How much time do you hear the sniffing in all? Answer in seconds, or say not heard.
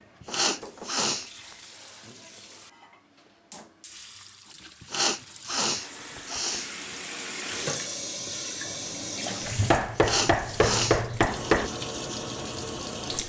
4 s.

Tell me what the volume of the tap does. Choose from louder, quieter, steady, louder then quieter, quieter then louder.
louder.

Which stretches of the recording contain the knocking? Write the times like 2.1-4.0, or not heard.
0.2-1.6, 6.0-6.6, 9.7-11.7.